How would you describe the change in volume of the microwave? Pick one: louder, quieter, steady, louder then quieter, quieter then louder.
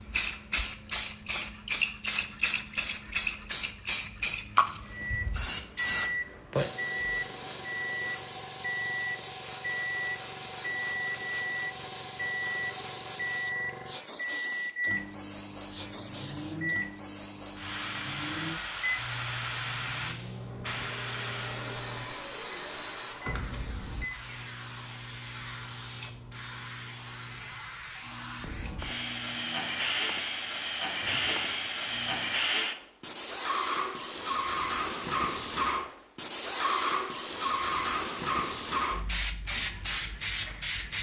quieter.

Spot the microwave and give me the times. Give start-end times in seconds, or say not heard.
4.8-32.4.